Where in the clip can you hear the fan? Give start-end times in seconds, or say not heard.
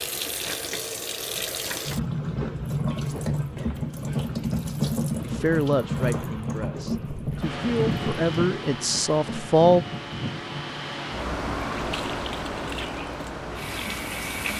6.9-14.5.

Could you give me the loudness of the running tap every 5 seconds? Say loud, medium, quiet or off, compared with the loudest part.
loud, loud, medium.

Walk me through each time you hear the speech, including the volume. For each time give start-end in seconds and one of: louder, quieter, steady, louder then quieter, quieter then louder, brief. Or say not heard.
5.2-9.8 quieter then louder.